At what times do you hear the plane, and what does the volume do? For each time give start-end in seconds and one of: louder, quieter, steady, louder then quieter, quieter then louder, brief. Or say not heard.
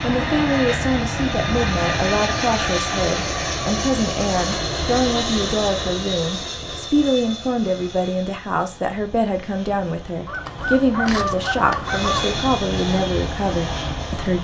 0.0-14.4 quieter then louder.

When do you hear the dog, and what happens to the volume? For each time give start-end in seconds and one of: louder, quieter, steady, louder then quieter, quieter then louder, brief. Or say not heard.
not heard.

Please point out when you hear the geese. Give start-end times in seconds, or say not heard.
10.2-12.3.